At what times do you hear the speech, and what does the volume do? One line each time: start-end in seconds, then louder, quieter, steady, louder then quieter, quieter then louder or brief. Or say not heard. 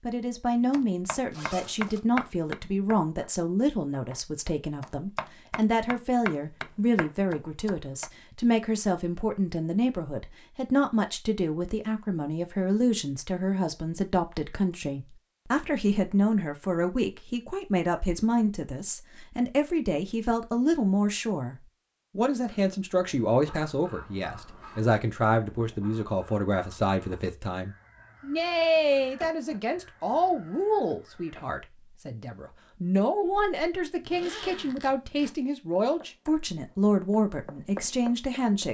0.0-21.6 steady
22.1-38.6 steady.